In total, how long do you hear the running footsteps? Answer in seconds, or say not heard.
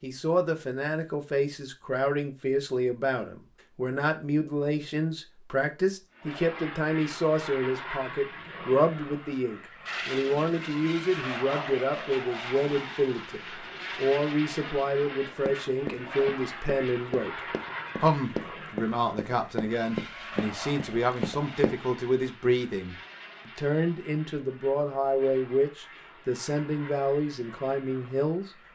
6 s.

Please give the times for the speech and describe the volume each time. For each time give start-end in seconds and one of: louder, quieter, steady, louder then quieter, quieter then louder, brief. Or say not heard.
0.0-17.4 steady
18.0-28.5 steady.